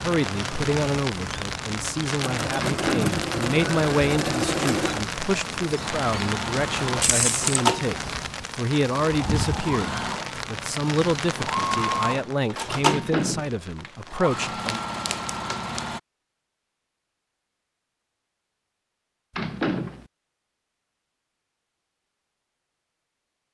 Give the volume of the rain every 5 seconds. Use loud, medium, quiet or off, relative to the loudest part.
loud, loud, loud, off, off.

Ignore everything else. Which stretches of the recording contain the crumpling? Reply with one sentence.
The crumpling can be heard from 7.0 to 7.6 s and from 14.6 to 15.8 s.